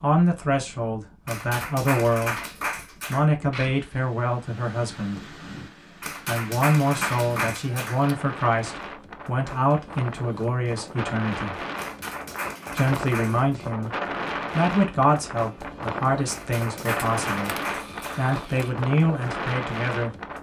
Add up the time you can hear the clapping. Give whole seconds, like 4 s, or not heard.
8 s.